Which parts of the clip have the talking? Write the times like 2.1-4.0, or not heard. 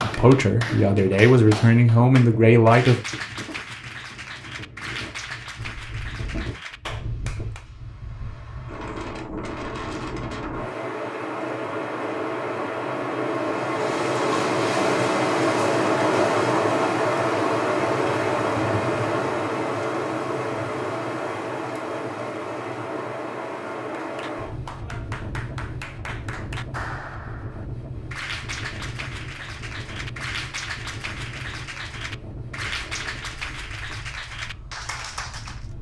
0.0-3.0.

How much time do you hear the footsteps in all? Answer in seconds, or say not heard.
not heard.